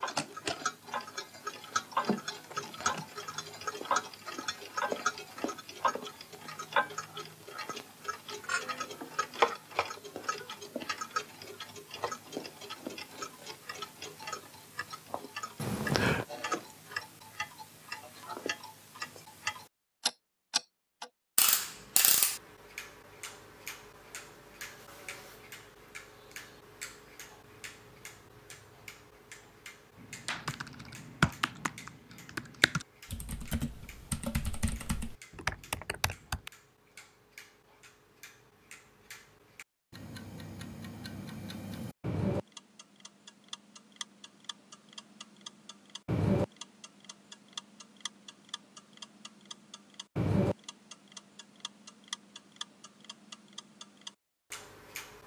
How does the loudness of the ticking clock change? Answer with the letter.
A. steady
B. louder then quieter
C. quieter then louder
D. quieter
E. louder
C.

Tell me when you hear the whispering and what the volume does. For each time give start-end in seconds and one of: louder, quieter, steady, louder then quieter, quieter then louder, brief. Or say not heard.
not heard.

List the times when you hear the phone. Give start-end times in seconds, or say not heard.
15.6-16.2.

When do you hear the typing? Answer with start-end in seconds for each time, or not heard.
29.9-36.5.